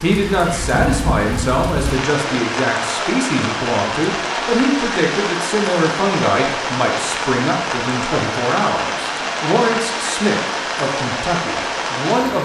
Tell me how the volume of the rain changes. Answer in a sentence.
The loudness of the rain stays about the same.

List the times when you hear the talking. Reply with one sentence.
You can hear the talking from 0.0 to 12.4 s.